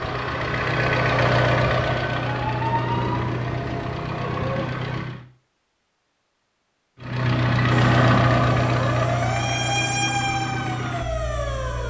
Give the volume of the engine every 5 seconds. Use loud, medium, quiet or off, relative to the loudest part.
loud, loud, medium.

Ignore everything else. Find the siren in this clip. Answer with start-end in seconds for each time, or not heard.
2.2-4.7, 7.7-11.8.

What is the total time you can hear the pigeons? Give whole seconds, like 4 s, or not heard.
not heard.